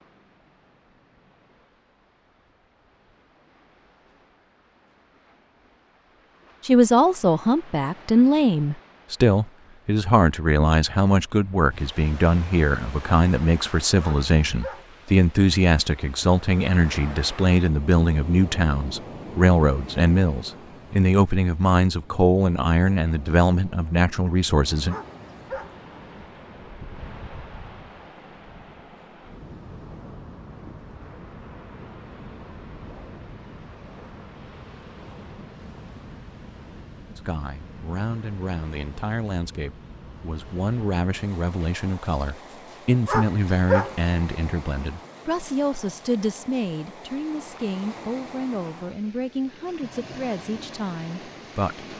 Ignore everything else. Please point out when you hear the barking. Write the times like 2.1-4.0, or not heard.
14.0-14.9, 24.9-25.8, 43.0-44.0.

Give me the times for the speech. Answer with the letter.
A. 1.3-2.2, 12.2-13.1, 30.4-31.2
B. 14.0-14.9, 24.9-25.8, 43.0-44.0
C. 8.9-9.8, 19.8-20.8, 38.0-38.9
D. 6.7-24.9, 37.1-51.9
D.